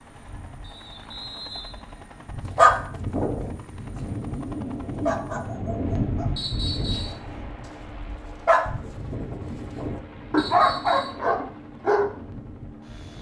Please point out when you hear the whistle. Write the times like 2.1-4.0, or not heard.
0.6-2.4, 6.3-7.2, 10.3-11.2.